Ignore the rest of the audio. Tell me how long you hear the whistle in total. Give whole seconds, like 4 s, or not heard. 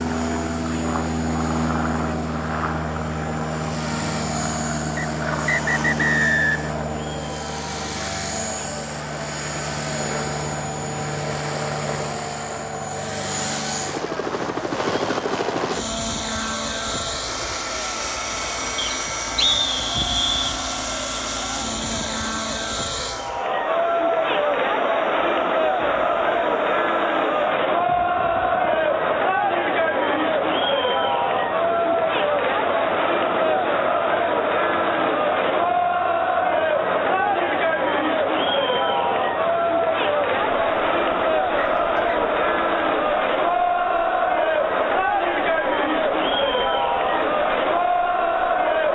4 s.